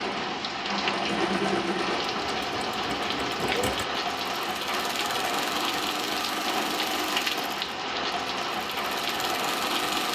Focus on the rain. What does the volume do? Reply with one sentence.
The volume of the rain stays about the same.